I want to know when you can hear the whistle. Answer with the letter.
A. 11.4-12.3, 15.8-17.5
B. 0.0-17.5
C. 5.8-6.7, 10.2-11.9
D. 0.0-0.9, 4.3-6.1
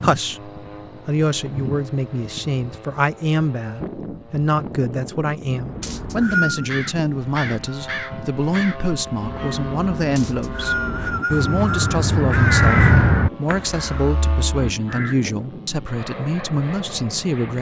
C.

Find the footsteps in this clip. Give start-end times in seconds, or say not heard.
not heard.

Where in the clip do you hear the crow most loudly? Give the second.
13 s.